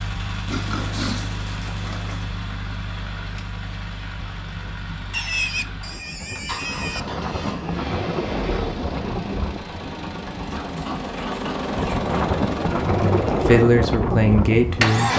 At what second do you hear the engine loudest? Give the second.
15 s.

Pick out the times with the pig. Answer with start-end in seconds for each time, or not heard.
0.5-2.2, 5.1-7.0, 10.4-12.3.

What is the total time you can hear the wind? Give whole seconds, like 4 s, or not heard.
11 s.